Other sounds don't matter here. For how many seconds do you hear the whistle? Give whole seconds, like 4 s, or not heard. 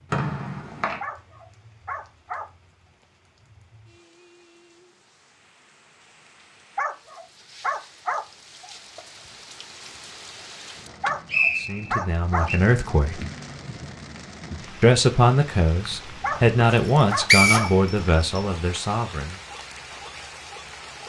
4 s.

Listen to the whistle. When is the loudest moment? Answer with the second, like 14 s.
17 s.